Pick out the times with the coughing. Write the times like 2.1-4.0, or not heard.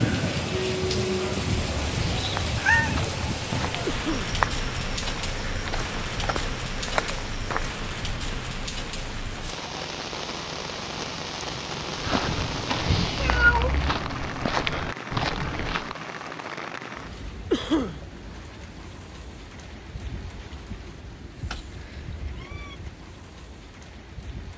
3.9-4.3, 17.5-18.0.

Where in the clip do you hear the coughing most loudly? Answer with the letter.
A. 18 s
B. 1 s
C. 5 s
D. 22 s
A.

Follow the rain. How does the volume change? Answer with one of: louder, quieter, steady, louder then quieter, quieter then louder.
quieter.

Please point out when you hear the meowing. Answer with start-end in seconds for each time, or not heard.
1.5-3.0, 13.2-14.1, 21.5-22.8.